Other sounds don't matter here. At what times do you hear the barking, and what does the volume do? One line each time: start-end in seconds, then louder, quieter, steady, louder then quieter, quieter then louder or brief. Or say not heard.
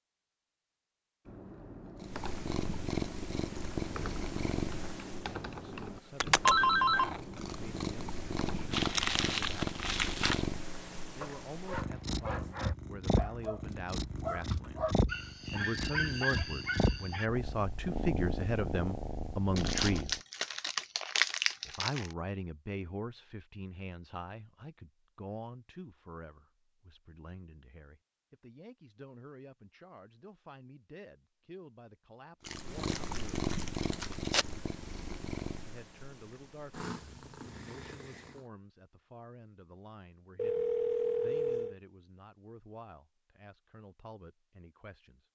11.2-17.3 louder.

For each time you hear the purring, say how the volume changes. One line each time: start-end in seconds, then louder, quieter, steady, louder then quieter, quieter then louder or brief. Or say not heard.
2.0-20.2 steady
32.5-38.5 quieter.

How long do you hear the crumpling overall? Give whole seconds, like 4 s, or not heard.
6 s.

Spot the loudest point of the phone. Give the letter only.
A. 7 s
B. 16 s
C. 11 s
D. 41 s
A.